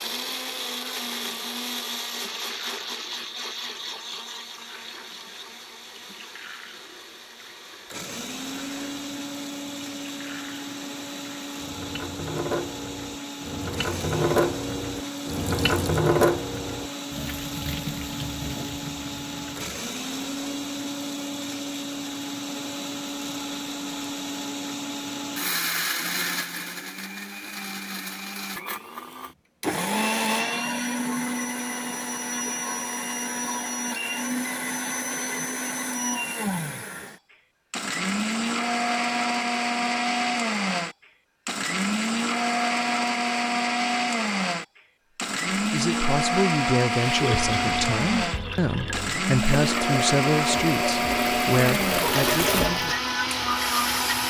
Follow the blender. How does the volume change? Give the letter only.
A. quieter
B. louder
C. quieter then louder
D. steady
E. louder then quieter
B.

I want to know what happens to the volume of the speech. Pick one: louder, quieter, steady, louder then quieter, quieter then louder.
steady.